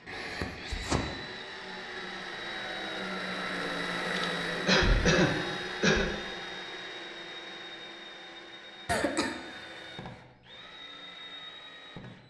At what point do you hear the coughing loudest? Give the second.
5 s.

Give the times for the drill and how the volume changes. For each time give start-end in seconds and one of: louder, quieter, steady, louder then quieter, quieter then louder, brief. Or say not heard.
0.0-12.2 louder then quieter.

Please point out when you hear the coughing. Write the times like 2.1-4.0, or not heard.
0.1-1.0, 4.1-6.1, 8.8-9.7.